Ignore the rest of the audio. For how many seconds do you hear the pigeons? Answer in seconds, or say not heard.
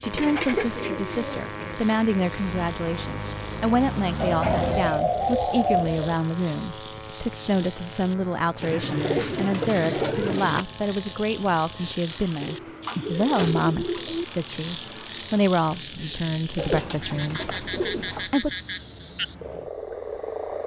9 s.